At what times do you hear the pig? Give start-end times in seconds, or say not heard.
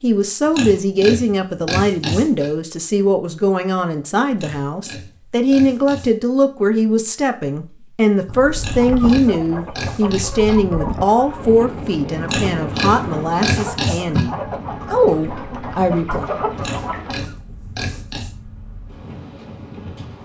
0.5-2.5, 4.3-6.1, 8.6-10.6, 12.2-14.2, 16.6-18.4.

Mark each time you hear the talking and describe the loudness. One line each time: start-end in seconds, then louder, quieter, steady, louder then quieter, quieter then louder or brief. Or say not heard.
0.0-16.3 steady.